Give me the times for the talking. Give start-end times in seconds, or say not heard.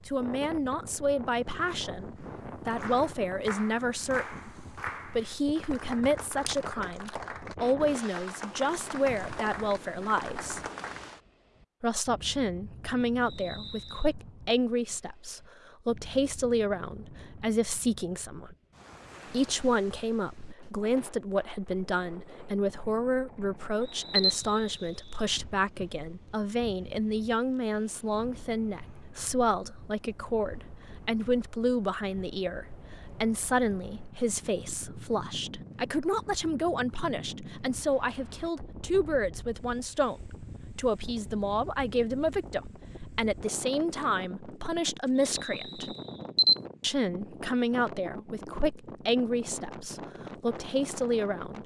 0.1-10.6, 11.8-18.6, 19.3-46.0, 46.8-51.6.